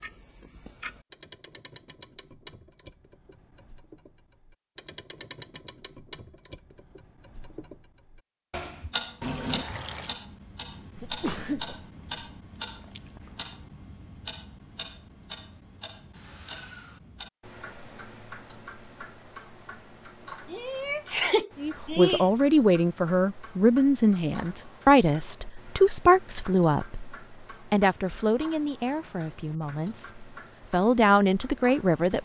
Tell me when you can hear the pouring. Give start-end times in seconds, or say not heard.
9.2-10.2.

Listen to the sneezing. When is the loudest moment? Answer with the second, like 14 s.
21 s.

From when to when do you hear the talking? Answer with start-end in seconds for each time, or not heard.
21.6-32.1.